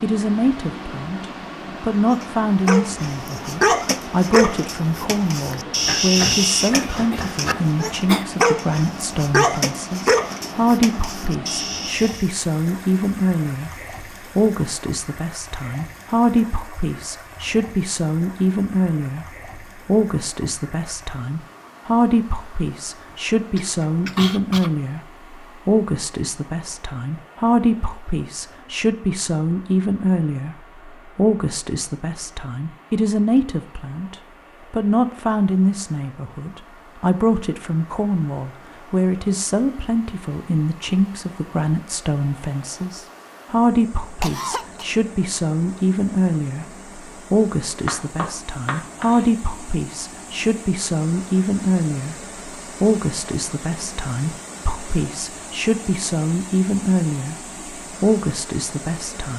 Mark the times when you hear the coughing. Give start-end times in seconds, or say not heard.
6.7-8.2, 23.1-24.7, 44.2-44.9.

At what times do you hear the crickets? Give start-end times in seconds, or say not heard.
not heard.